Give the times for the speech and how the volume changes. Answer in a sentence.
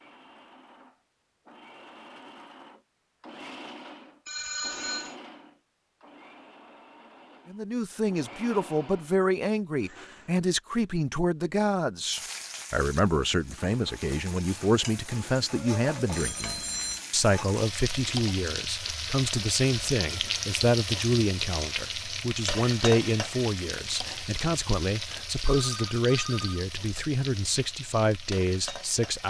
You can hear the speech from 7.5 to 29.2 s, at a steady volume.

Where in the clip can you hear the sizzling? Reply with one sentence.
You can hear the sizzling from 12.1 to 29.2 s.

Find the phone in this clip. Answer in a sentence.
You can hear the phone from 4.2 to 5.2 s, from 16.1 to 17.0 s and from 25.5 to 27.1 s.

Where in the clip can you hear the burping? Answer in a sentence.
The burping can't be heard in this clip.